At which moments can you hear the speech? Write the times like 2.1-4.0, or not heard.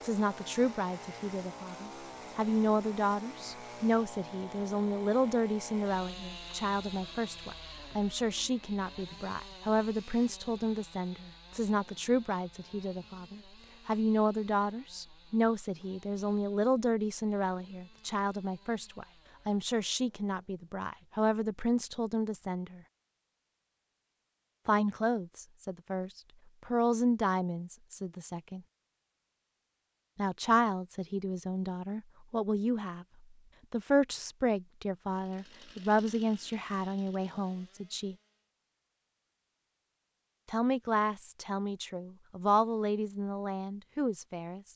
0.0-22.8, 24.6-28.6, 30.1-33.0, 33.7-38.1, 40.5-44.6.